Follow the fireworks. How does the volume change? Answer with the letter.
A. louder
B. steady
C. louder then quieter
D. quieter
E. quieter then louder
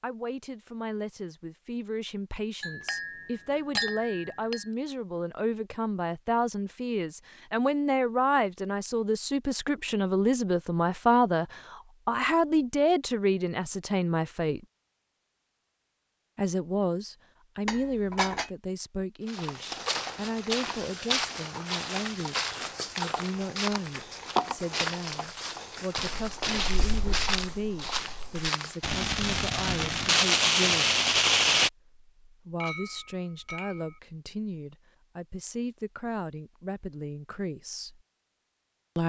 E.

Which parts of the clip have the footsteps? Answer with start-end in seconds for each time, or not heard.
19.2-28.9.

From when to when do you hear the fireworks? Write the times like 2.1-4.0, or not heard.
25.9-31.7.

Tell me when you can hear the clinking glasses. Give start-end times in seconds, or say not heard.
2.6-4.6, 17.6-18.5, 32.6-34.0.